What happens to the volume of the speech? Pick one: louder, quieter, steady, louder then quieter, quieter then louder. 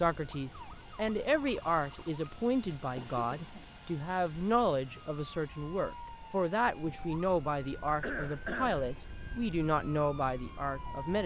steady.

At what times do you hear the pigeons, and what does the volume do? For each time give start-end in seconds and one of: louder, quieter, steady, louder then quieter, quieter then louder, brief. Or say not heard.
not heard.